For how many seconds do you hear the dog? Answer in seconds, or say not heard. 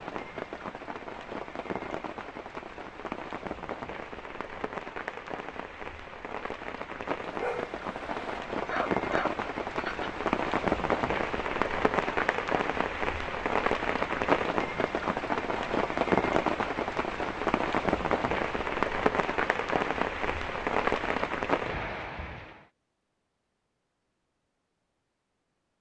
3 s.